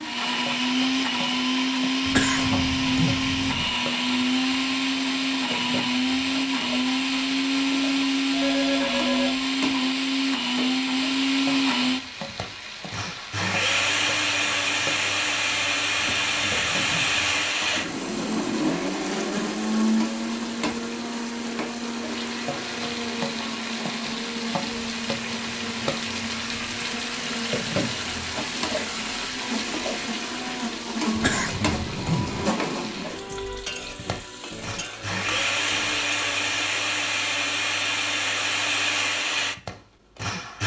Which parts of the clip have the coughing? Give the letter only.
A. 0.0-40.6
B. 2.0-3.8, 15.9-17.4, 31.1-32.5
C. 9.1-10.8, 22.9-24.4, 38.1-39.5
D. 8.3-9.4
B.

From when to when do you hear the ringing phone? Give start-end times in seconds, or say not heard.
8.3-9.4.